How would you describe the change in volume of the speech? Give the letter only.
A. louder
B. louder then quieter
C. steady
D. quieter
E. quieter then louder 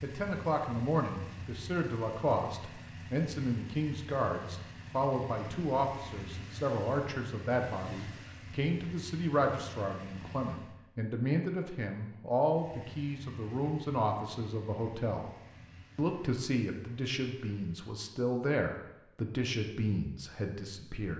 C.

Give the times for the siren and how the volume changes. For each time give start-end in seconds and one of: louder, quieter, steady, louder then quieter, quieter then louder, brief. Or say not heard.
not heard.